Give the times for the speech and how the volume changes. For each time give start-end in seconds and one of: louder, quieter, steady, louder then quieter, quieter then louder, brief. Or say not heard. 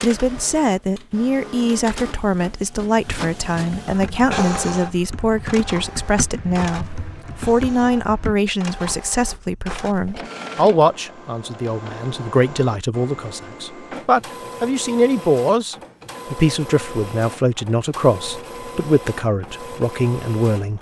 0.0-20.7 steady.